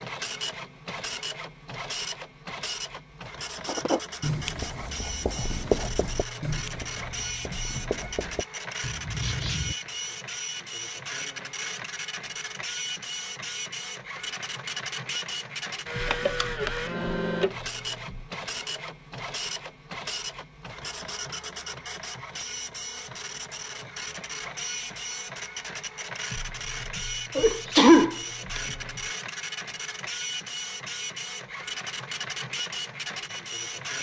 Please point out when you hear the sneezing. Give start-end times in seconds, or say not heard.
27.4-28.6.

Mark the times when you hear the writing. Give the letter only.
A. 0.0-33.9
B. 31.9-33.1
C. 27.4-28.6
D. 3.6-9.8
D.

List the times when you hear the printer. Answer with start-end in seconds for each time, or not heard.
0.0-33.9.